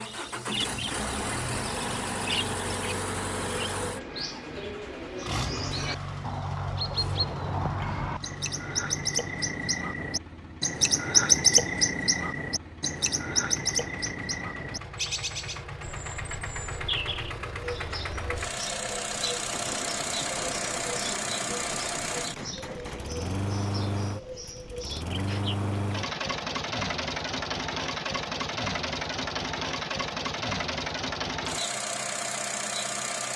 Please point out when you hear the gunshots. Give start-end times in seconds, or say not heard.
5.8-7.3, 19.5-23.1.